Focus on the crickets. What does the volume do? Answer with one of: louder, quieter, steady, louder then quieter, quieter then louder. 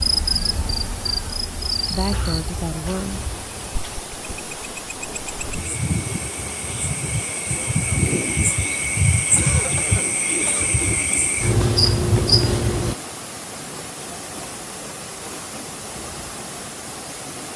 quieter then louder.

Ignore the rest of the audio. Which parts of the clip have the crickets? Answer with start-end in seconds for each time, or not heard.
0.0-12.9.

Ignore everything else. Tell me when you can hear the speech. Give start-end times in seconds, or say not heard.
1.9-3.3.